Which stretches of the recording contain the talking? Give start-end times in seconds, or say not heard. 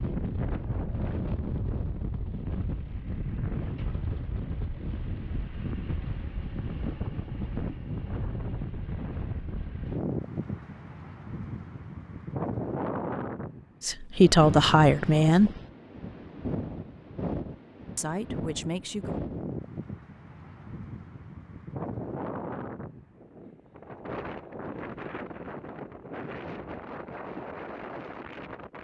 13.8-15.5, 17.9-19.2.